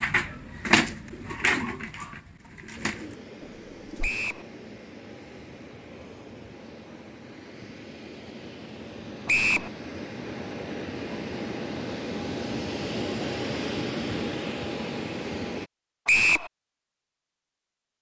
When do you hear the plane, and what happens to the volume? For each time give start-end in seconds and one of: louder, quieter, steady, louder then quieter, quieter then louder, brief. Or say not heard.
2.8-15.7 louder.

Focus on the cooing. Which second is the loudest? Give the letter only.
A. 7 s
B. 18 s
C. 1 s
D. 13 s
C.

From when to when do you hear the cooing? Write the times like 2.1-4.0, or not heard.
0.0-4.1.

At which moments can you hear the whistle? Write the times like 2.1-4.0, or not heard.
4.0-4.5, 9.2-9.7, 16.1-16.5.